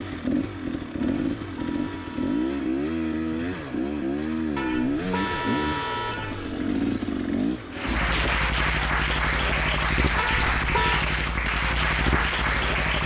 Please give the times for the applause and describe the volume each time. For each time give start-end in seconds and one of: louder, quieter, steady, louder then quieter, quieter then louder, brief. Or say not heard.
7.7-13.0 steady.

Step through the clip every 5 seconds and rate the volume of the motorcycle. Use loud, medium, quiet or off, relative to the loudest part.
loud, loud, medium.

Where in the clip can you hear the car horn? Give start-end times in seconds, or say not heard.
1.0-2.6, 4.5-6.5, 10.2-11.1.